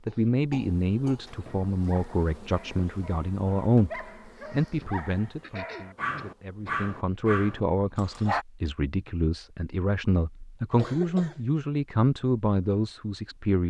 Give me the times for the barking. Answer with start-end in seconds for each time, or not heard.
1.7-8.4.